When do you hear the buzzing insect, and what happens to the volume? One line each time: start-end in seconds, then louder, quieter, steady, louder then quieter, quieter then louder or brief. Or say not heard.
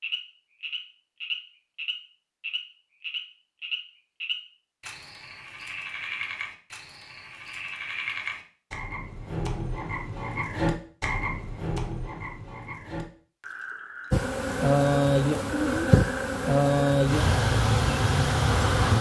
14.1-18.9 steady.